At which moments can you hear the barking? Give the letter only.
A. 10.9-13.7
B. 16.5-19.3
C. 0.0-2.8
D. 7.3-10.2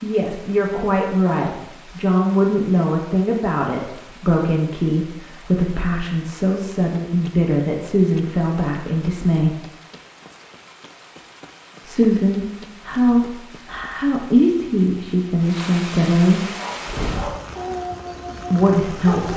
B.